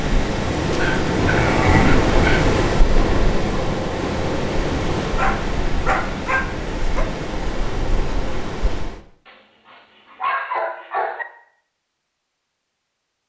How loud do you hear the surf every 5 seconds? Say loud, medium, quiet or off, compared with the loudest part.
loud, medium, off.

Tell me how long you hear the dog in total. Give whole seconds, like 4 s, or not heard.
6 s.